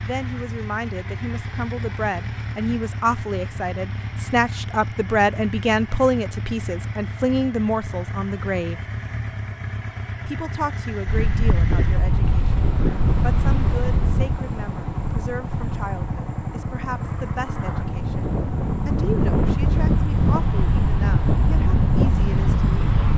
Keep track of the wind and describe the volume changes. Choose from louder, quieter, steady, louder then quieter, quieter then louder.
quieter then louder.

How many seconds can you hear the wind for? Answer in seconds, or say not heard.
12 s.